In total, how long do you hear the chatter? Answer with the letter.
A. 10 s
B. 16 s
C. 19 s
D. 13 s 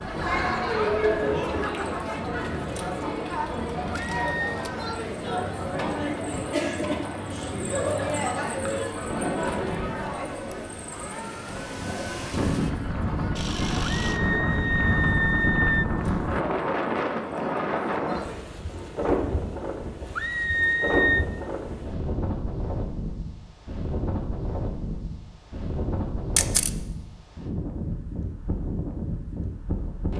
C.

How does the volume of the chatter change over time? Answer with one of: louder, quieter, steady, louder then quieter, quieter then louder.
quieter.